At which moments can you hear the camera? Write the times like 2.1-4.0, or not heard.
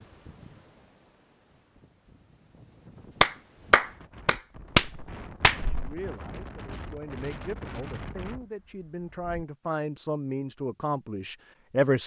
not heard.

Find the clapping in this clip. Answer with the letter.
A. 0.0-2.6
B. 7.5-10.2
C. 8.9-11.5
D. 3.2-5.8
D.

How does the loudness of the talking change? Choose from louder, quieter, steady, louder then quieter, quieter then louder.
louder.